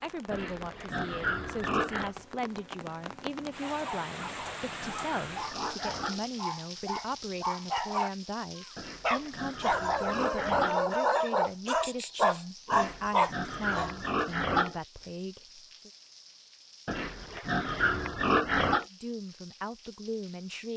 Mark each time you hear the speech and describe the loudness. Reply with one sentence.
You can hear the speech from 0.0 to 15.9 s, at a steady volume; and briefly from 18.8 to 20.7 s.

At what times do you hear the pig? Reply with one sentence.
The pig can be heard from 0.3 to 2.1 s, from 4.2 to 6.2 s, from 8.8 to 10.8 s, from 12.7 to 14.8 s and from 16.9 to 18.9 s.